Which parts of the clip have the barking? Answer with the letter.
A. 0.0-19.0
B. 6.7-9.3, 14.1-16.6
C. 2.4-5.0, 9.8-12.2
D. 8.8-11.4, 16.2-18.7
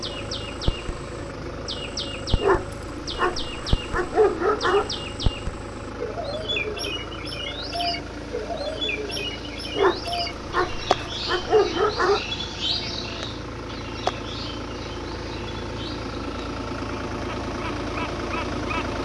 C.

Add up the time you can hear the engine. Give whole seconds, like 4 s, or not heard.
19 s.